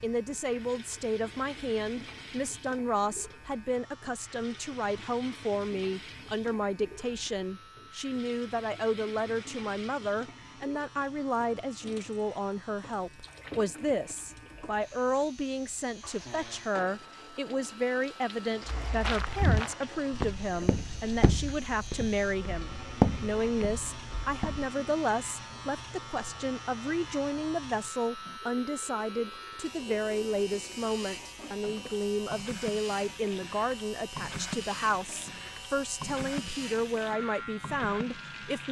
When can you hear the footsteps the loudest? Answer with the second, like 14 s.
23 s.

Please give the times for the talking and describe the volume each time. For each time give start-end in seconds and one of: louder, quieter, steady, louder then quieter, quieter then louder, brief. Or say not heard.
0.0-38.6 steady.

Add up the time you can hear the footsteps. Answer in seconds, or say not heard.
6 s.